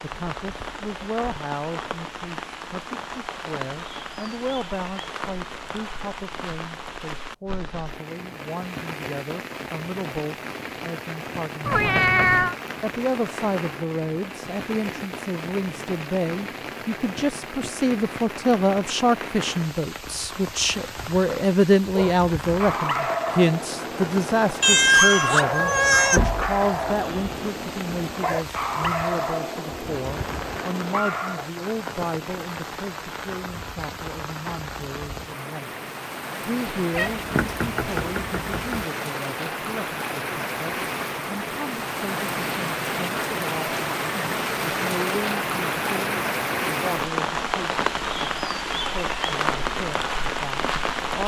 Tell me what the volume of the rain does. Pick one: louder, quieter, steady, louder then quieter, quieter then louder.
louder.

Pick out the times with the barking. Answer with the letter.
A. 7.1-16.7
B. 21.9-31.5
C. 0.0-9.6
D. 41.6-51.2
B.